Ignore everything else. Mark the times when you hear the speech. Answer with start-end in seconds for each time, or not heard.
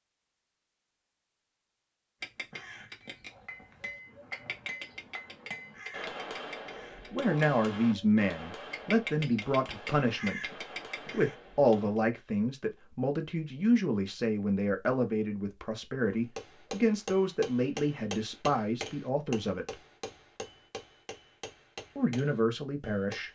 7.1-19.8, 21.9-23.2.